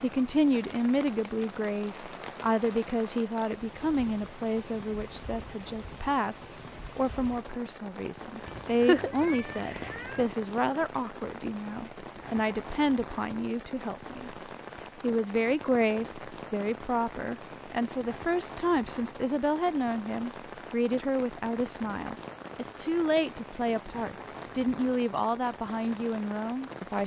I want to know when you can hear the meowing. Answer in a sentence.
The meowing can be heard from 8.4 to 10.2 s.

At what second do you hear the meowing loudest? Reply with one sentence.
The loudest moment of the meowing is at 9 seconds.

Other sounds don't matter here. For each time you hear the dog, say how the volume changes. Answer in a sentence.
You can't hear the dog here.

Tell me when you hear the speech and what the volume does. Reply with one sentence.
You can hear the speech from 0.0 to 27.0 s, at a steady volume.